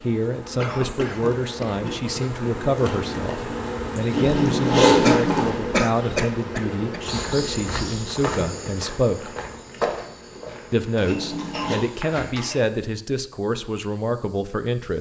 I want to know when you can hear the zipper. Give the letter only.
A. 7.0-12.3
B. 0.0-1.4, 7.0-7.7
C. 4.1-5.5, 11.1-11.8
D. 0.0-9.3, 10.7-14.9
C.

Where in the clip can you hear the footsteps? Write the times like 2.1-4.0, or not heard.
7.0-12.3.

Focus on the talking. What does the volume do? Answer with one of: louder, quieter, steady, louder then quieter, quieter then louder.
steady.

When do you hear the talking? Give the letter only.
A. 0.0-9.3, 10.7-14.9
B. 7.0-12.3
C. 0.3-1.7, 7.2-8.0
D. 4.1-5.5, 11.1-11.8
A.